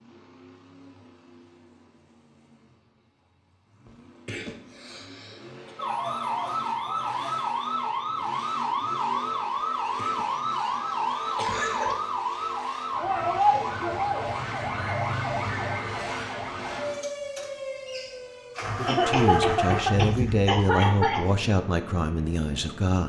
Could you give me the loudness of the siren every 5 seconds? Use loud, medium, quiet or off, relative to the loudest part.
off, loud, loud, medium, off.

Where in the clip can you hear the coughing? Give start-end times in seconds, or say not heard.
3.9-5.7, 9.9-11.9, 18.9-21.2.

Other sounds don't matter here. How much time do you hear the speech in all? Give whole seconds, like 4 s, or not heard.
4 s.